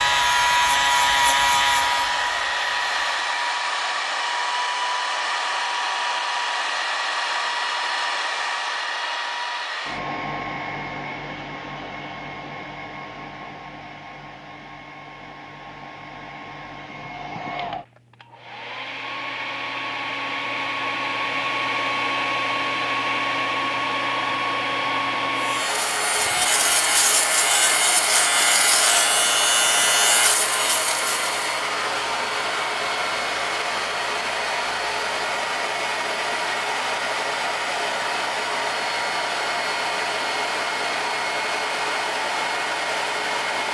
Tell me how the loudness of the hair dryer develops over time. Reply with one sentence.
The loudness of the hair dryer goes down, then up.